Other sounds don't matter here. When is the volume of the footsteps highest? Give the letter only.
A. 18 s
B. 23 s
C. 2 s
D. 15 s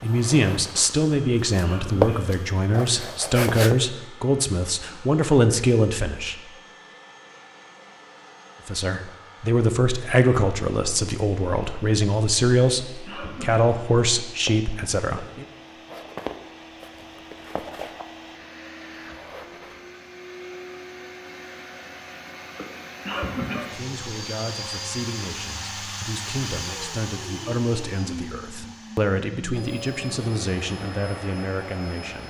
C.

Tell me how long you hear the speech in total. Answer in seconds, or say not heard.
22 s.